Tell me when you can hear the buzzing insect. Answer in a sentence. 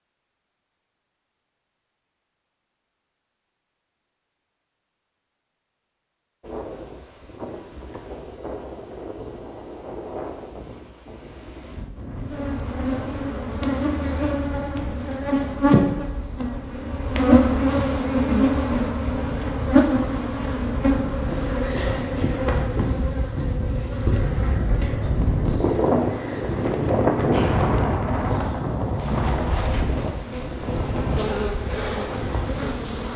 The buzzing insect can be heard from 11.9 to 33.1 s.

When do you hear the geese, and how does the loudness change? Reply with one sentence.
You can't hear the geese here.